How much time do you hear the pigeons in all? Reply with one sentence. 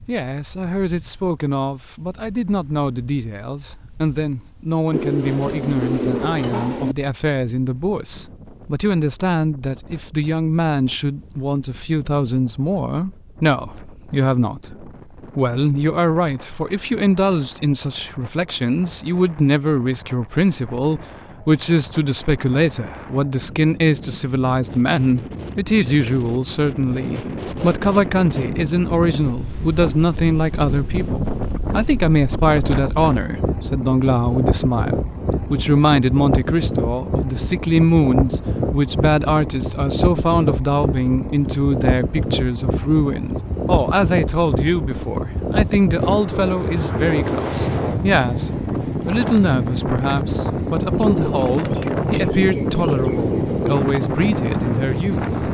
The pigeons can be heard for 5 seconds in total.